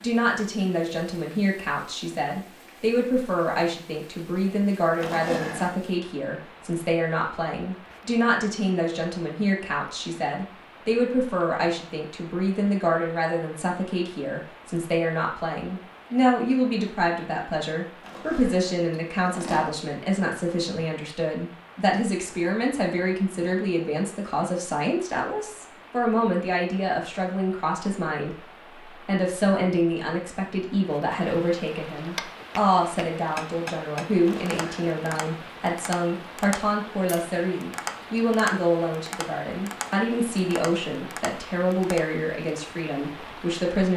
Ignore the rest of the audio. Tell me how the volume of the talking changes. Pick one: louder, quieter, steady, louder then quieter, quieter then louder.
steady.